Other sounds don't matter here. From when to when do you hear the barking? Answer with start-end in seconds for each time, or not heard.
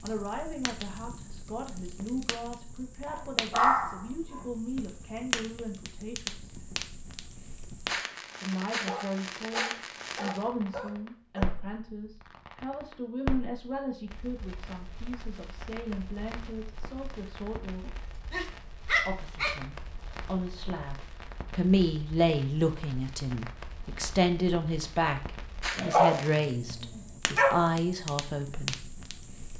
3.0-4.4, 8.8-11.5, 17.9-19.6, 25.8-27.6.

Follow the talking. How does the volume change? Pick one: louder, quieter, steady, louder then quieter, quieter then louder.
louder.